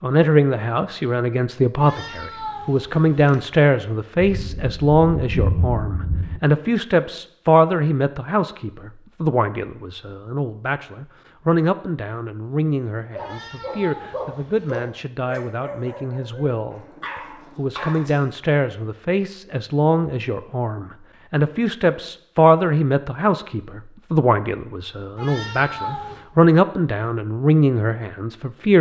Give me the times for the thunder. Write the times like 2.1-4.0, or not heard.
4.2-6.4.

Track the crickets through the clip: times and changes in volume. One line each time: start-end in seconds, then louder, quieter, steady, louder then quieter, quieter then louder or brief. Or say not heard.
not heard.